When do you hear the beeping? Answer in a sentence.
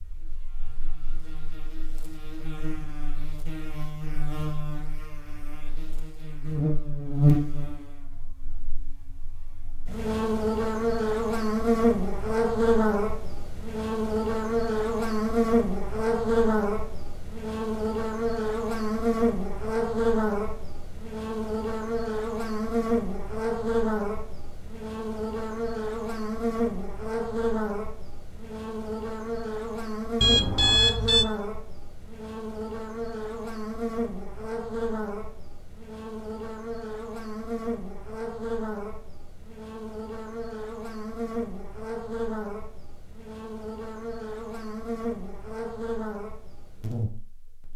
You can hear the beeping from 30.2 to 31.2 s.